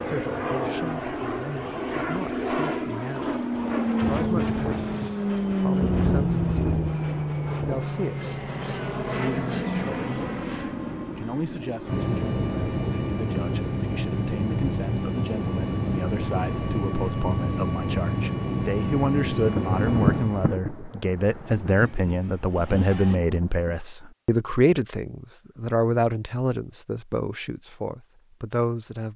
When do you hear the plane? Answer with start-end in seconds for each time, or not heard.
0.0-20.6.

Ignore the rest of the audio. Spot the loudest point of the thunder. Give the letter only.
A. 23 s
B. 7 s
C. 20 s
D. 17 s
C.